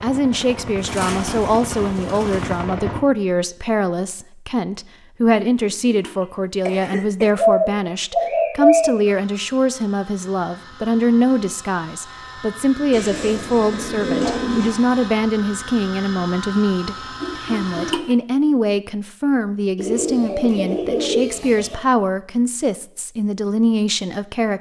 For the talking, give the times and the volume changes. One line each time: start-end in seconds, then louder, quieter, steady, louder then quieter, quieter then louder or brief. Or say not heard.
0.0-24.5 steady.